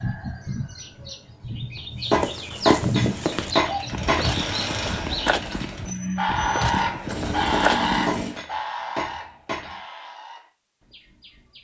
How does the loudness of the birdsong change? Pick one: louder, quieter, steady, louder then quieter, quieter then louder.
louder then quieter.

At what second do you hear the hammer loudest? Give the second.
3 s.